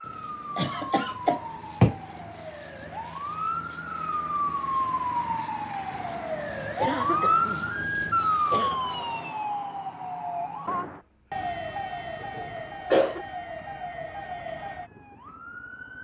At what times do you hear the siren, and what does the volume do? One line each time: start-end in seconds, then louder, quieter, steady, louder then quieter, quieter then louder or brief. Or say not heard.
0.0-15.9 louder then quieter.